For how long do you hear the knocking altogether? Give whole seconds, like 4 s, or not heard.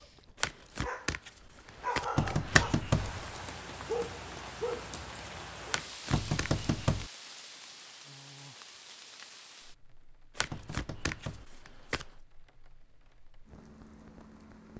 3 s.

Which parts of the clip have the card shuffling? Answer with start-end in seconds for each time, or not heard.
0.4-2.8, 5.7-6.5, 10.3-12.1.